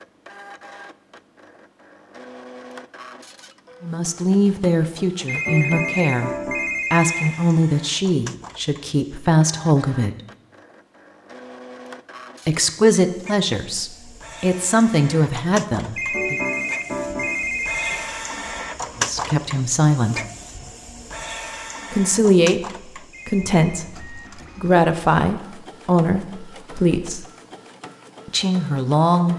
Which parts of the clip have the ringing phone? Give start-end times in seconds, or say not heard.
5.2-7.3, 15.9-17.9, 23.1-23.6.